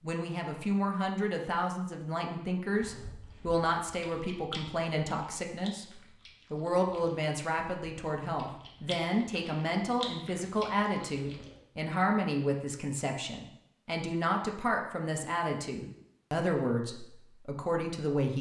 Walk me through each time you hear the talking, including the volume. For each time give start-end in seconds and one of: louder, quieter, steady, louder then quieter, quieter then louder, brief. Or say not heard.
0.0-5.8 steady
6.5-18.3 steady.